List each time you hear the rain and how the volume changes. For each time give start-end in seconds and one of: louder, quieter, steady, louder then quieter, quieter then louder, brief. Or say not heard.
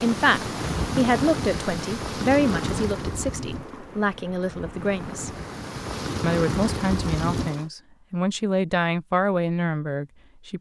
0.0-7.7 quieter then louder.